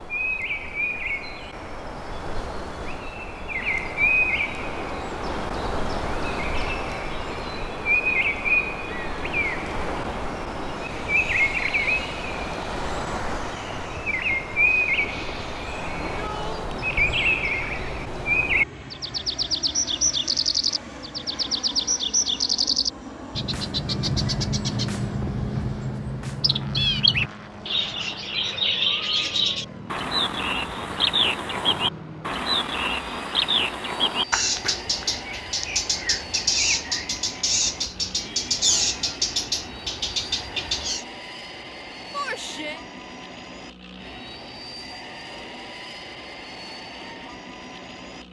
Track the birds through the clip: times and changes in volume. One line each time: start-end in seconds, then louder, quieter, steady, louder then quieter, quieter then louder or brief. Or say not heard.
0.0-41.0 steady.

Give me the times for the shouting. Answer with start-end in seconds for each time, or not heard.
16.1-16.7, 42.1-42.8.